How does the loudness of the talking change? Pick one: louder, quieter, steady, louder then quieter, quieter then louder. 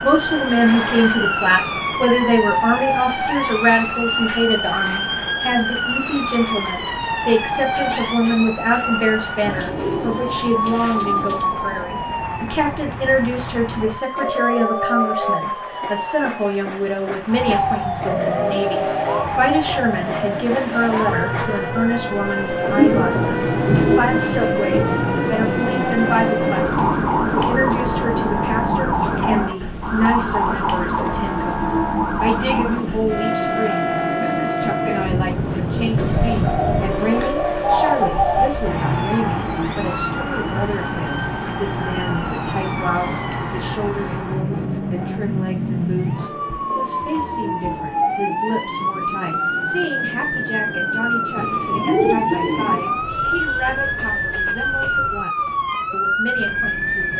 quieter.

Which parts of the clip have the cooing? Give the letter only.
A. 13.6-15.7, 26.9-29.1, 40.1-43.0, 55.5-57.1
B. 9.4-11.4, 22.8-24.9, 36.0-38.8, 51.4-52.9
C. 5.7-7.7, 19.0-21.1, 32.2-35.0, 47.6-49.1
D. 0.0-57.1
B.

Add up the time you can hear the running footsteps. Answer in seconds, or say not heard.
not heard.